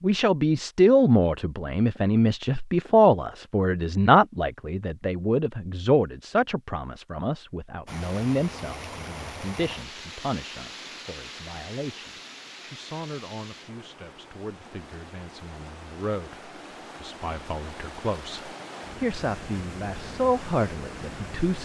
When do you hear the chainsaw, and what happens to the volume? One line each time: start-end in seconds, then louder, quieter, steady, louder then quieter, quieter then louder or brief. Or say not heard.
not heard.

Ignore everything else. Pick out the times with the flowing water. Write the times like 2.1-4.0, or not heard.
7.8-21.5.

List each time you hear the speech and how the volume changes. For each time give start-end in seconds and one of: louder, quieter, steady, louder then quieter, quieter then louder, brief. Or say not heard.
0.0-21.5 quieter then louder.